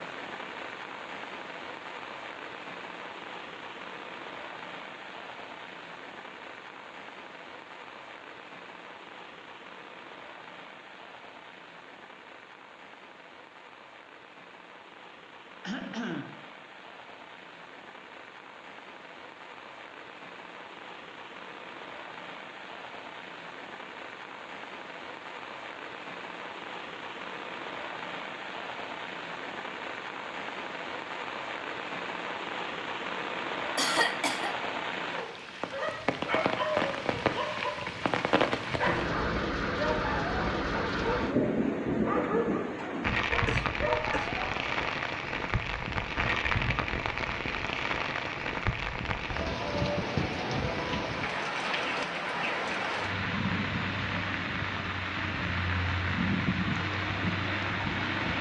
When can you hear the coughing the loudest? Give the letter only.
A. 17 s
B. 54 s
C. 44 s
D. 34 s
D.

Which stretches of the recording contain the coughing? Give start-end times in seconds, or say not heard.
15.6-16.4, 33.8-34.5, 43.5-44.4.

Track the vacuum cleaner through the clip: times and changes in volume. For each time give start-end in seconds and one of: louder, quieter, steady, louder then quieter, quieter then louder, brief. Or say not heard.
not heard.